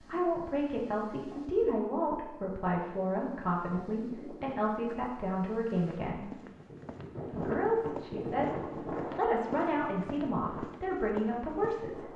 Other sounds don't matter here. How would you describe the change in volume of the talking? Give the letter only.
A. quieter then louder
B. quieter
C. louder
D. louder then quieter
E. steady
E.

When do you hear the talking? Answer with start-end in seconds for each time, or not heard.
0.0-6.3, 7.3-12.1.